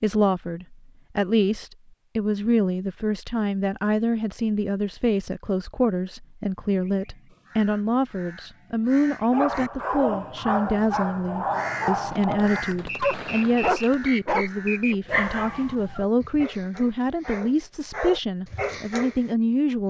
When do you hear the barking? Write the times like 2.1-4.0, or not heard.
9.3-19.2.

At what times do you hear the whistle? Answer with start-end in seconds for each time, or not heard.
12.8-15.2.